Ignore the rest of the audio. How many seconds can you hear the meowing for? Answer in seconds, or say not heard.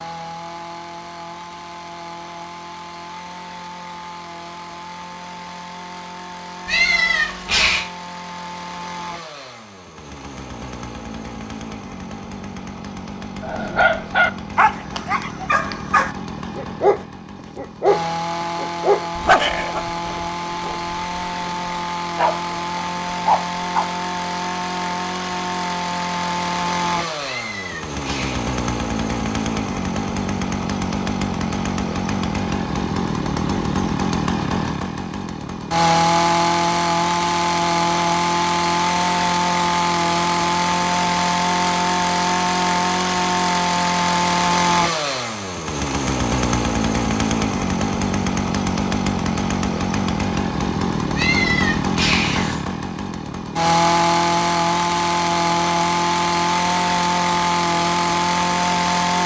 4 s.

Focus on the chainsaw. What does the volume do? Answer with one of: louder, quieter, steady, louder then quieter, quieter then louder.
louder.